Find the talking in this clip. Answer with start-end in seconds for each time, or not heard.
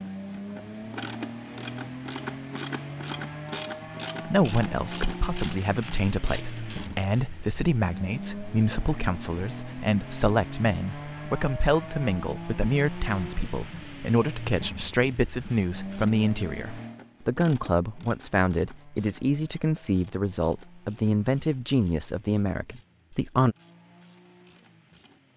4.2-23.6.